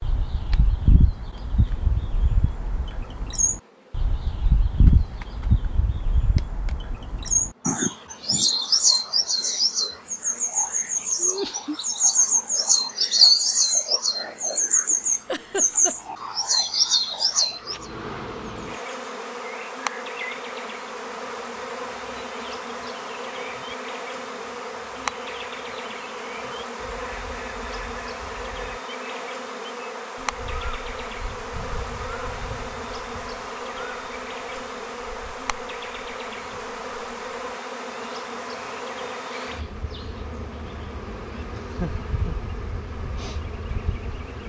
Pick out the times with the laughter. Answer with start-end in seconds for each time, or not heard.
11.1-11.8, 15.2-15.9, 41.5-42.4.